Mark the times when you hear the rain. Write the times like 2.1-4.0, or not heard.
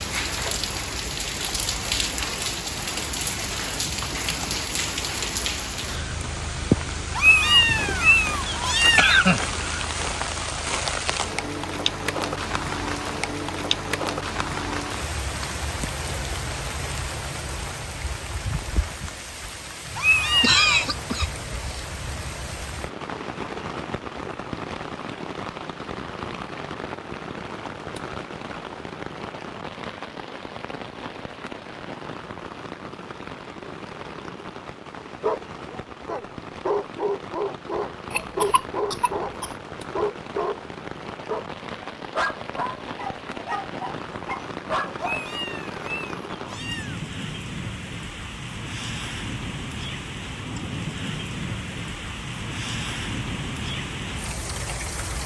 0.0-55.2.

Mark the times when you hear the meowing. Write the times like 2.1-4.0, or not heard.
7.2-9.2, 19.9-20.6, 45.0-47.0.